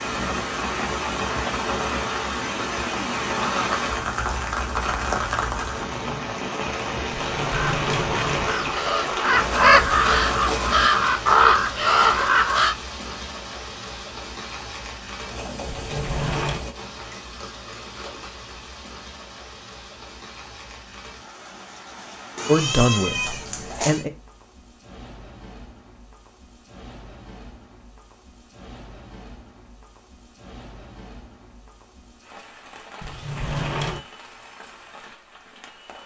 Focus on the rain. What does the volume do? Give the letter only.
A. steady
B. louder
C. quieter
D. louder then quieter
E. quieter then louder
C.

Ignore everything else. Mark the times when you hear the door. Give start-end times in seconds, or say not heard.
7.2-9.2, 15.7-16.6, 33.0-34.0.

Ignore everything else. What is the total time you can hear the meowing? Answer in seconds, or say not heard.
2 s.